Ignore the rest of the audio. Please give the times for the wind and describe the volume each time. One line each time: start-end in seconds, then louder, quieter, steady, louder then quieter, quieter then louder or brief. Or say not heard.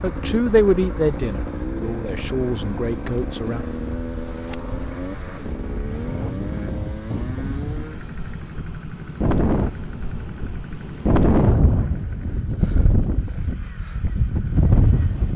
0.0-15.3 louder.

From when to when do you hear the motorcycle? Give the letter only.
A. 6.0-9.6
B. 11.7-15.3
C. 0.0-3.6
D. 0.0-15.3
D.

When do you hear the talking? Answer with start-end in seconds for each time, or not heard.
0.0-3.6.